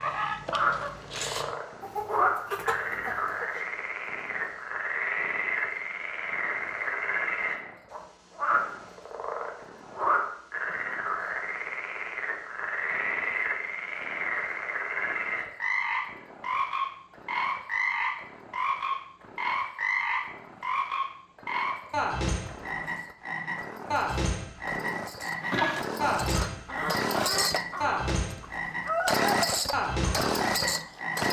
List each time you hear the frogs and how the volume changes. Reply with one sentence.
The frogs can be heard from 0.0 to 31.2 s, at a steady volume.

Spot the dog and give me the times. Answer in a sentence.
You can't hear the dog here.